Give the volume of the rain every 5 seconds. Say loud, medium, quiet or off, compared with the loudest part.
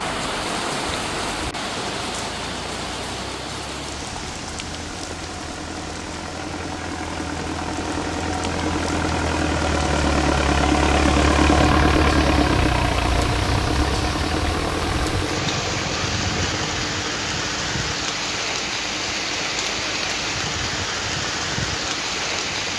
loud, medium, loud, loud, loud.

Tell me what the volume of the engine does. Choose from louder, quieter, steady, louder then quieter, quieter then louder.
louder then quieter.